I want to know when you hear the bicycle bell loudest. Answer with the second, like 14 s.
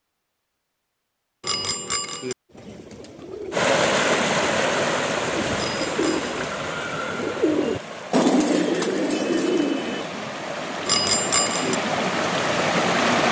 11 s.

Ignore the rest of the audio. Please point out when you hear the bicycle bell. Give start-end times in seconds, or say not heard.
1.4-2.4, 5.5-6.5, 10.8-11.8.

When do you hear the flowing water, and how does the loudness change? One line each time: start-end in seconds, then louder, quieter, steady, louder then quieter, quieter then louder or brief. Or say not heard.
3.5-13.2 quieter then louder.